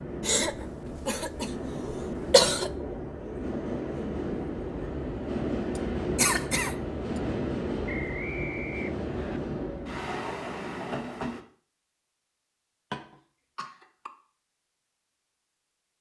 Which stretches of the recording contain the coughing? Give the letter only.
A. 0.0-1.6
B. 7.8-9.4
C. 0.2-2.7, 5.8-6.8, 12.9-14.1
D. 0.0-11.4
C.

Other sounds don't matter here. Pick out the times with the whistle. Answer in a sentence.
You can hear the whistle from 7.8 to 9.4 s.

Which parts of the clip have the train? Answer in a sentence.
You can hear the train from 0.0 to 11.4 s.